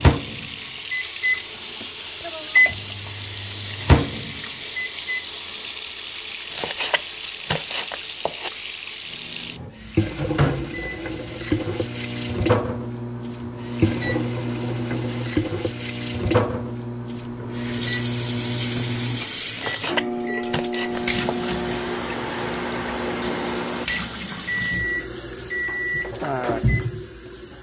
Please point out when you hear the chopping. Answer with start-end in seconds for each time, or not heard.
6.5-8.5, 19.6-21.5.